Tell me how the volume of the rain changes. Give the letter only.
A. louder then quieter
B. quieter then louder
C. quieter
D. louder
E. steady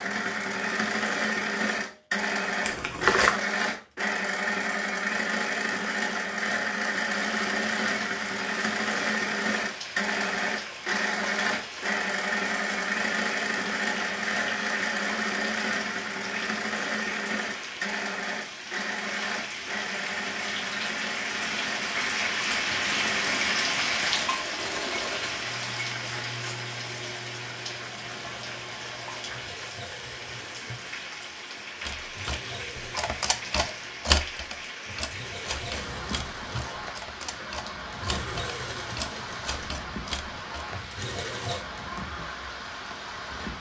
A.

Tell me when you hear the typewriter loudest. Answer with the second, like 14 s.
34 s.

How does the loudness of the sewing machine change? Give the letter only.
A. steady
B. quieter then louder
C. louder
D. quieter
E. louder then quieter
D.